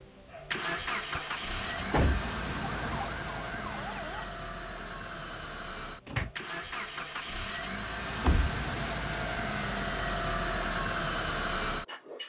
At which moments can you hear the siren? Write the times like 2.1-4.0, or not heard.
2.0-4.2.